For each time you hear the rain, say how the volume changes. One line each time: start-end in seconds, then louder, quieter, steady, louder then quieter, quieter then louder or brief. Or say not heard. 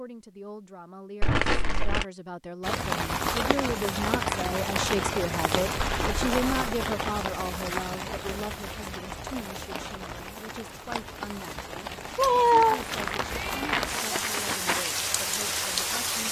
2.6-16.2 quieter then louder.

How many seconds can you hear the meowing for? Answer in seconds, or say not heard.
2 s.